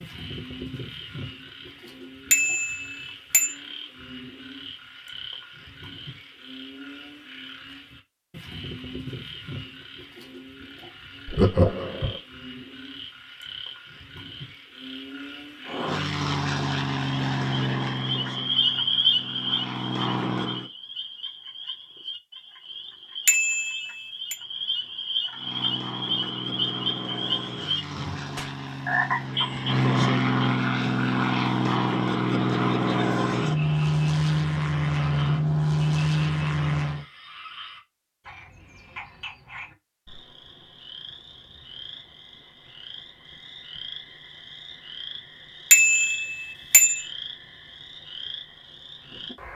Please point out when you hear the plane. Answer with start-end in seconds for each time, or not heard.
15.7-20.7, 25.3-37.0.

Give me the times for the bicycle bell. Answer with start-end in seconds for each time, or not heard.
2.3-3.5, 23.2-24.4, 45.7-47.0.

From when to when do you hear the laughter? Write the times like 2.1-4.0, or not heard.
11.2-12.2.